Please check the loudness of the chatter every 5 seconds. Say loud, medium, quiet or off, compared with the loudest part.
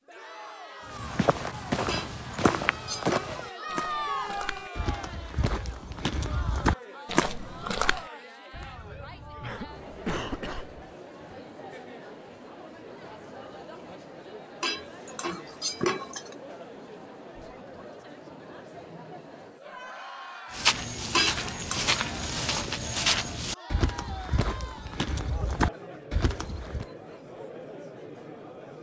loud, medium, medium, medium, medium, medium.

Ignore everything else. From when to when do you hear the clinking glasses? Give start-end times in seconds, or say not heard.
1.9-3.3, 14.6-16.4, 21.1-21.8.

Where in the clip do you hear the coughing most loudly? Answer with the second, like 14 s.
10 s.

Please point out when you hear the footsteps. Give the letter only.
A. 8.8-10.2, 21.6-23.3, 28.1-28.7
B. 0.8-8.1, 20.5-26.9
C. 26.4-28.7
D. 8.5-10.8
B.